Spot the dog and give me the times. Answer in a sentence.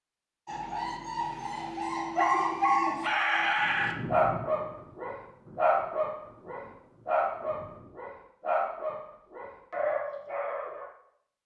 You can hear the dog from 0.5 to 10.8 s.